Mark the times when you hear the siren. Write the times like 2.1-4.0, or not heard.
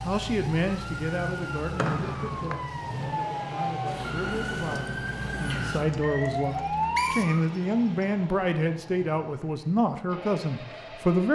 0.2-7.4.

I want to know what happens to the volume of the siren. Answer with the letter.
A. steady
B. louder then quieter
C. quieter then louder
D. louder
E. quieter
D.